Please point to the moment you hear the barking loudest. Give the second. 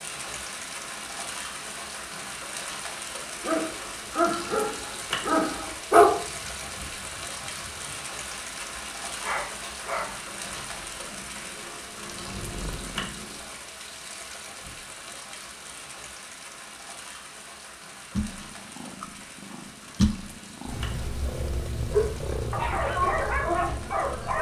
6 s.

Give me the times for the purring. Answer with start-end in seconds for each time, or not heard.
10.1-13.7, 18.1-24.3.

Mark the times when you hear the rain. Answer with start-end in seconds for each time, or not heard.
0.0-24.3.